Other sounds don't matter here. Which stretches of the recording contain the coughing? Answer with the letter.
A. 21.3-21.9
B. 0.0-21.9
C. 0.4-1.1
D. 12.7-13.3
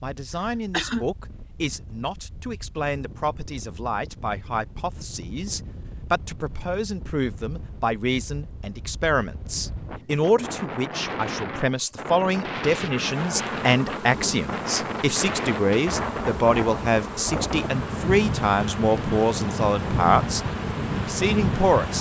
C.